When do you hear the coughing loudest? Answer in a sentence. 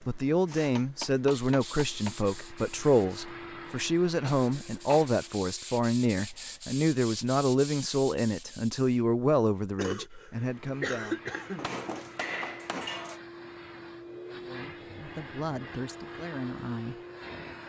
The volume of the coughing peaks at 11 seconds.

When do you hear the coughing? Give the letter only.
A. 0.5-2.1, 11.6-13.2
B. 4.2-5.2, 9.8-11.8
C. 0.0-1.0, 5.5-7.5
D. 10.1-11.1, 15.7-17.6
B.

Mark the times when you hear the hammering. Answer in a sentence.
The hammering can be heard from 0.5 to 2.1 s and from 11.6 to 13.2 s.